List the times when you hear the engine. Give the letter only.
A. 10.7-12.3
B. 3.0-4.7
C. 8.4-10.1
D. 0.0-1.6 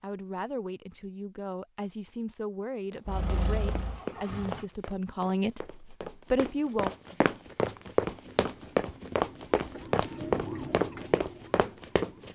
B.